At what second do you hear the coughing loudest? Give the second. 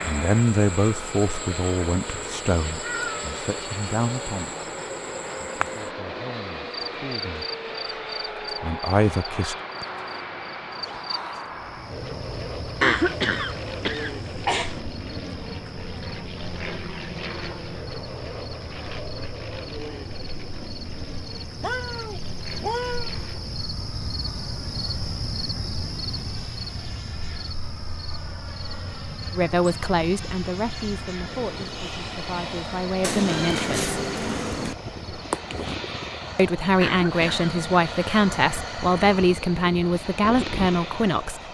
13 s.